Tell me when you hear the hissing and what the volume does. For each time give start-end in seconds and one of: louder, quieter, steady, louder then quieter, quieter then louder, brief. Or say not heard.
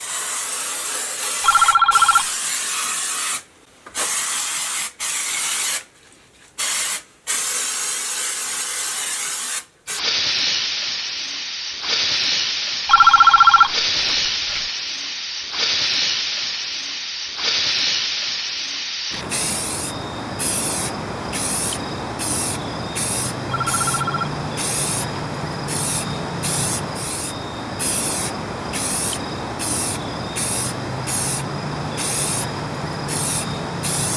0.0-34.1 steady.